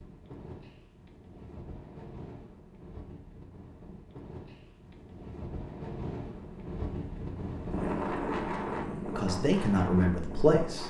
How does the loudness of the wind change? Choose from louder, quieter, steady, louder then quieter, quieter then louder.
louder.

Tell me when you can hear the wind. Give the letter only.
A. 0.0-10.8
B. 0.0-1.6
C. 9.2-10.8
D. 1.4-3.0
A.